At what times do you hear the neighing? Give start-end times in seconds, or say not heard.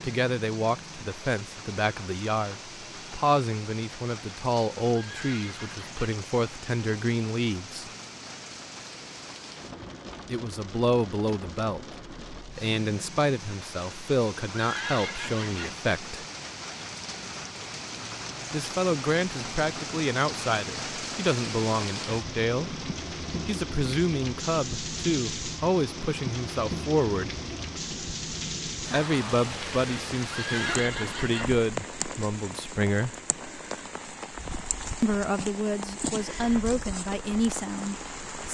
4.8-6.0, 14.5-15.8, 30.2-31.6.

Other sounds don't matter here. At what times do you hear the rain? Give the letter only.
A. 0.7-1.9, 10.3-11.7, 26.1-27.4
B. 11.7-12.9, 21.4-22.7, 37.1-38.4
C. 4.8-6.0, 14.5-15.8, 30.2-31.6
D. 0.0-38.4
D.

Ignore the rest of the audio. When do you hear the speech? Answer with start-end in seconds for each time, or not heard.
0.0-7.9, 10.2-16.2, 18.5-27.4, 28.9-33.1, 35.0-38.4.